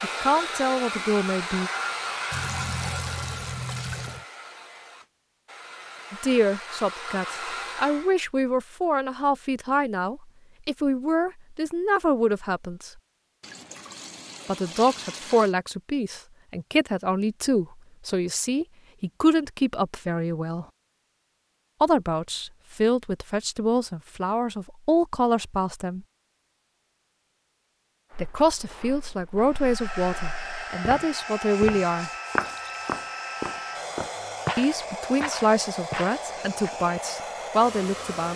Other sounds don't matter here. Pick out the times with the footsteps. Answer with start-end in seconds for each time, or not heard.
28.1-36.8.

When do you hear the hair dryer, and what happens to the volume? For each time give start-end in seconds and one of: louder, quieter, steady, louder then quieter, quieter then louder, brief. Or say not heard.
0.0-8.2 quieter then louder
29.4-38.3 steady.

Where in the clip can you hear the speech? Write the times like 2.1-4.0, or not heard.
0.0-1.7, 6.1-12.9, 14.4-20.6, 21.8-26.0, 28.2-32.1, 34.5-38.3.